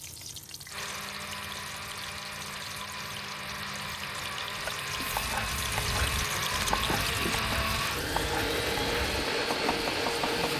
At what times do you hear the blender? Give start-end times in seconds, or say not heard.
0.0-10.5.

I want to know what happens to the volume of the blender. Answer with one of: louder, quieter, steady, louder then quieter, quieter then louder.
louder.